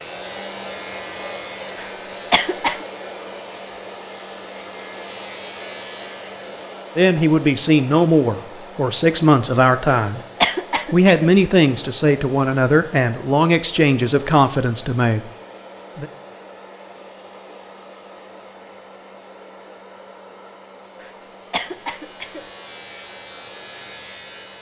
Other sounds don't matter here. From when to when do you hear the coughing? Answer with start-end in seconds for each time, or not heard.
1.8-2.9, 9.8-11.3, 21.0-22.4.